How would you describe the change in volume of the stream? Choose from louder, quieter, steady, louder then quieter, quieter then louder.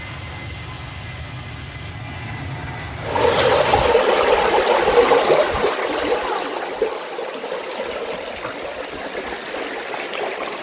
quieter.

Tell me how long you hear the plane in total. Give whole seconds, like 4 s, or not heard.
4 s.